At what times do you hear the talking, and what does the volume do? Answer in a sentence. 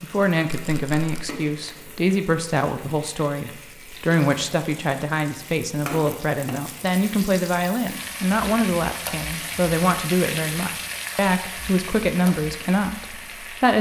You can hear the talking from 0.0 to 13.7 s, at a steady volume.